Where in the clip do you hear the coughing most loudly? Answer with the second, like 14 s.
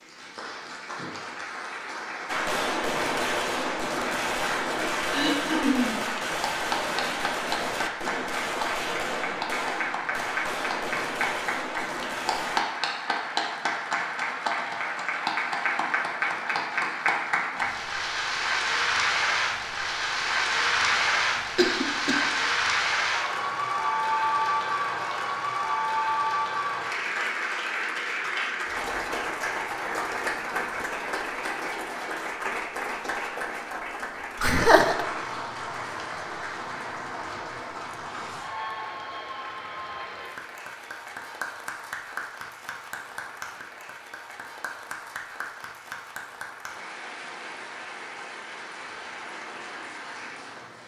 35 s.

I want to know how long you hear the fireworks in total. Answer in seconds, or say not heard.
10 s.